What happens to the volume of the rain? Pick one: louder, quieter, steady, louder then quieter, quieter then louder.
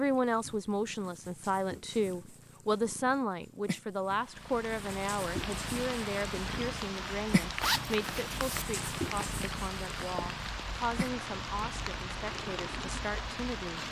steady.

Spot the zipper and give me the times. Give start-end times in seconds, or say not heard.
7.6-8.7.